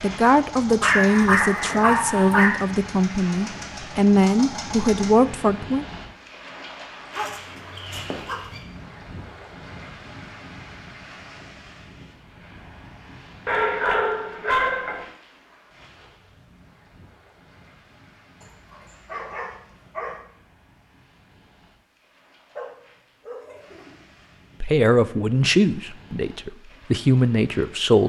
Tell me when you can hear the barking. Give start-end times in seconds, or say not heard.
0.8-2.5, 7.2-8.6, 13.4-15.1, 18.4-20.2, 22.6-23.9.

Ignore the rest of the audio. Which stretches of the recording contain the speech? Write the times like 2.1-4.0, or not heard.
0.0-5.8, 24.6-28.0.